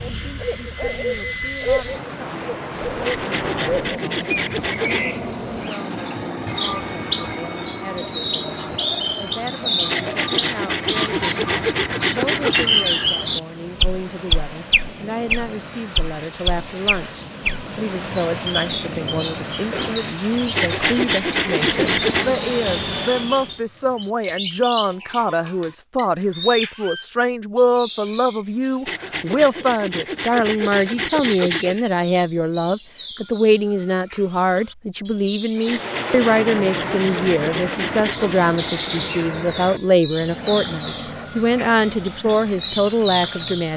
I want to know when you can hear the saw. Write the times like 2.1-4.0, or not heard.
3.0-5.0, 9.8-12.8, 20.6-22.2, 28.9-31.9, 35.6-38.4.